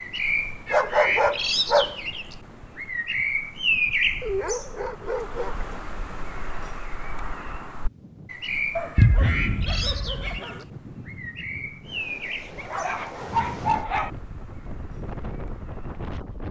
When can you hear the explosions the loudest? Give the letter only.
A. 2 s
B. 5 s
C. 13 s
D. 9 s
D.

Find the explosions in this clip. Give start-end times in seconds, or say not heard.
8.9-10.3.